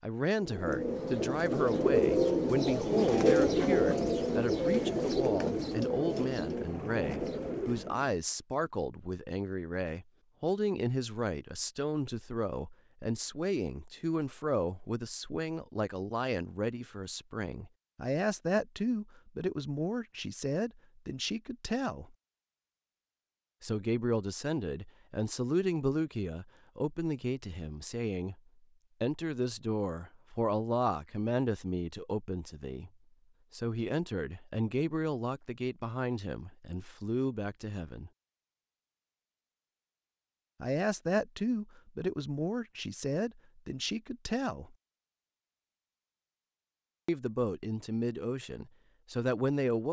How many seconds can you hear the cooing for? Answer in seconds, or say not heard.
8 s.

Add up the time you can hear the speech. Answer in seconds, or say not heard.
42 s.